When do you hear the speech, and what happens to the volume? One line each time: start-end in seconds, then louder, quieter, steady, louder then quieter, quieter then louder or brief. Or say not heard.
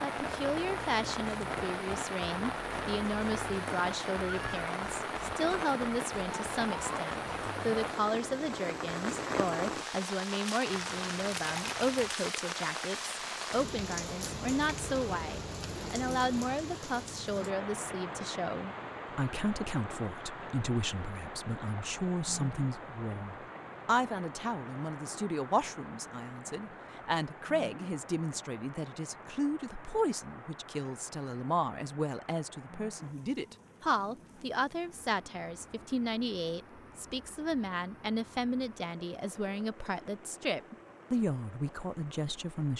0.0-42.7 steady.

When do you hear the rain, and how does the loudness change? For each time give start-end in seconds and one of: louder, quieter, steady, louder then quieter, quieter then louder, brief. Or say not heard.
0.0-42.7 quieter.